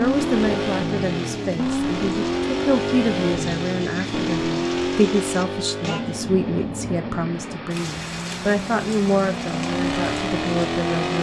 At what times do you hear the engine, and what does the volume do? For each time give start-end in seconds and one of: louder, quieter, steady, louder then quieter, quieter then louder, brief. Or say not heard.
0.0-11.1 quieter then louder.